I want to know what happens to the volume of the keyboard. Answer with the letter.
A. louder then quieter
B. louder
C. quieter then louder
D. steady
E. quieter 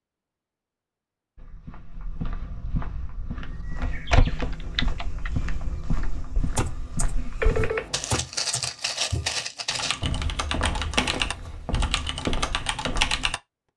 B.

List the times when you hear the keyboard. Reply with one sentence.
The keyboard can be heard from 4.3 to 13.4 s.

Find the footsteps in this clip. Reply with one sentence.
You can hear the footsteps from 1.4 to 13.3 s.